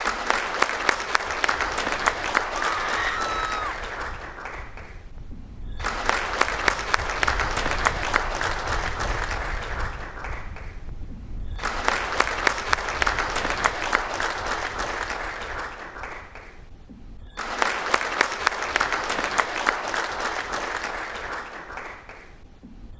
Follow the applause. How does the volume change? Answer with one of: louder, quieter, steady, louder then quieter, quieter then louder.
steady.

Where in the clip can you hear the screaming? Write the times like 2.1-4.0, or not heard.
2.5-3.8.